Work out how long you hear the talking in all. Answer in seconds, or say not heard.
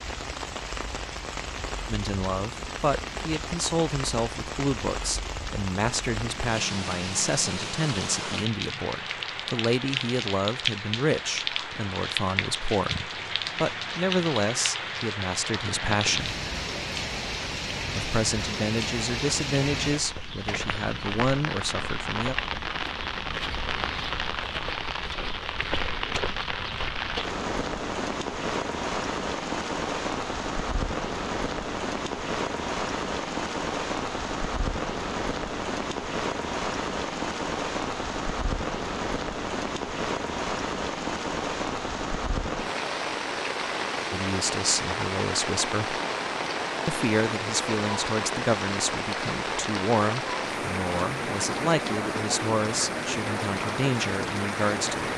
29 s.